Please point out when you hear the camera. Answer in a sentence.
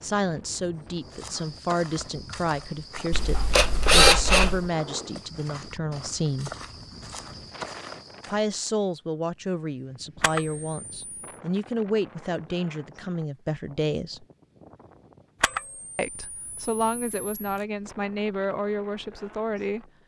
The camera can be heard from 3.1 to 4.7 s, from 10.2 to 11.2 s and from 15.4 to 17.6 s.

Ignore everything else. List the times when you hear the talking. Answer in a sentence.
The talking can be heard from 0.0 to 6.5 s, from 8.2 to 14.2 s and from 15.9 to 19.9 s.